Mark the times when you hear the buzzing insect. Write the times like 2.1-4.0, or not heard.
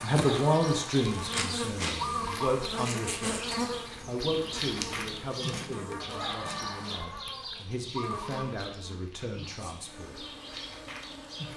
0.0-11.5.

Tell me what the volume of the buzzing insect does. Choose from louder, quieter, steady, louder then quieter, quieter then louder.
quieter.